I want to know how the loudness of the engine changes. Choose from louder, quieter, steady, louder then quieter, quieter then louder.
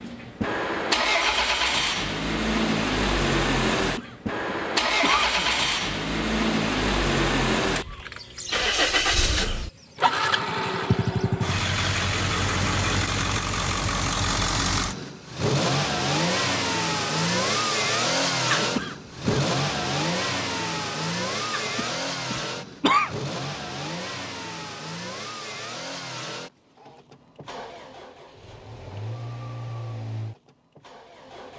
quieter.